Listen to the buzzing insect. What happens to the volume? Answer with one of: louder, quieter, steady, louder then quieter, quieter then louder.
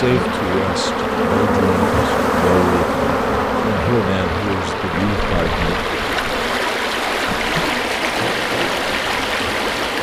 quieter.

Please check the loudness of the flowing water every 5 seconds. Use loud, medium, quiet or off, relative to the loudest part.
medium, loud.